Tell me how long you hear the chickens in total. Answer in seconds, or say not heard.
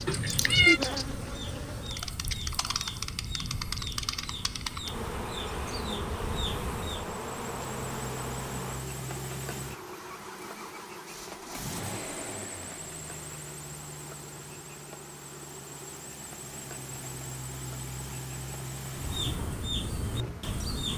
9 s.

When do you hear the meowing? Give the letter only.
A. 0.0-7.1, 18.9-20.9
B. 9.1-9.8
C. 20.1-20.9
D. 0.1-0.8
D.